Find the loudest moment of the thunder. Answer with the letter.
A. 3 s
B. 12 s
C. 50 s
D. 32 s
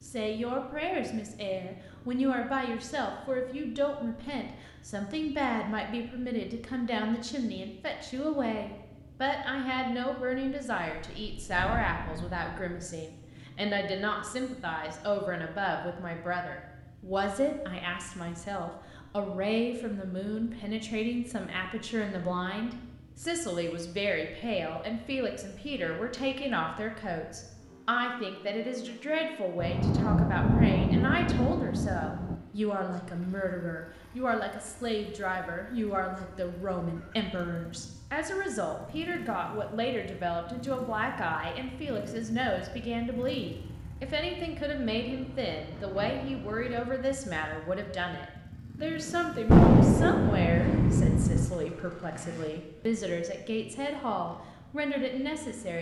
C.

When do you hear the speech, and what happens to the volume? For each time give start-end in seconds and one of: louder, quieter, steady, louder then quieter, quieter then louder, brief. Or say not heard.
0.0-55.7 steady.